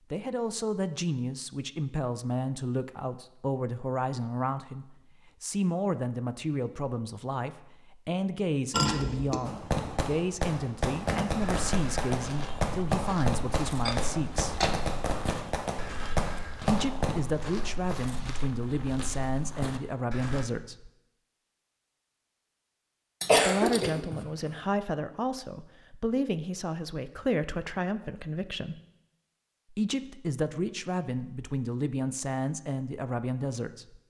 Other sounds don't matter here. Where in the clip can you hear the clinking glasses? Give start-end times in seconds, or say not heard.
8.7-9.4, 13.8-14.8, 23.2-23.9.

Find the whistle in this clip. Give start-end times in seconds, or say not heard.
not heard.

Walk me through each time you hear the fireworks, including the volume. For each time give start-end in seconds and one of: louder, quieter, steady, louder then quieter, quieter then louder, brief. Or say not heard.
9.4-17.2 steady.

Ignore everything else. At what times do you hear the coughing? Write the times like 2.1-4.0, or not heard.
23.2-24.2.